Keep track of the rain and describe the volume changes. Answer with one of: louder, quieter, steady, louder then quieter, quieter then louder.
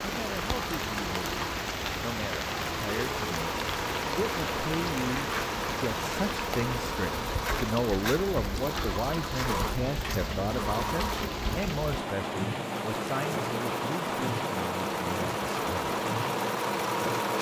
steady.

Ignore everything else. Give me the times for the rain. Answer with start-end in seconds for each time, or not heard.
0.0-17.3.